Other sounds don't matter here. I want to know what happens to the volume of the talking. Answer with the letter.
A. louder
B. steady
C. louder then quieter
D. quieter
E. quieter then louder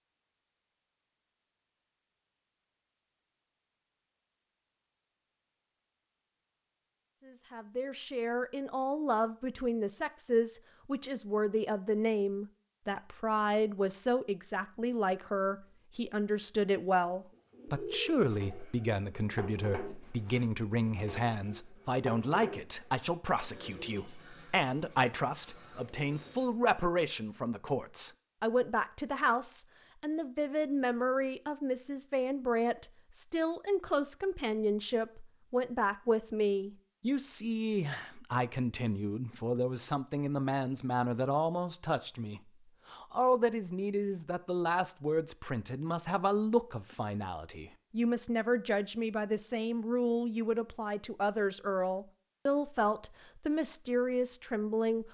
B.